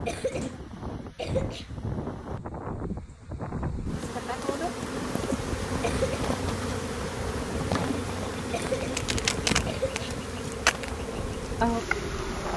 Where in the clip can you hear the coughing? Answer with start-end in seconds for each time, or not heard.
0.1-1.6, 5.8-6.3, 8.5-10.2.